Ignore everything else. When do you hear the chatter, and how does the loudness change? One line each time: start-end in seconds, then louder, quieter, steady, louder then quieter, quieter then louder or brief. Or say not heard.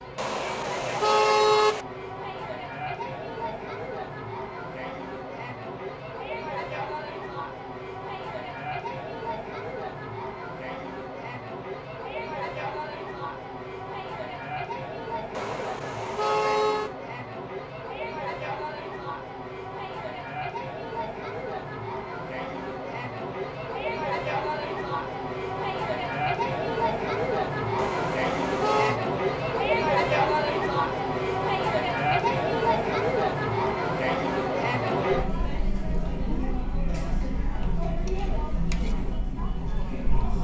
0.0-40.3 louder.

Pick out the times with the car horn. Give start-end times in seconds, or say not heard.
0.1-1.9, 15.3-16.9, 27.8-29.0.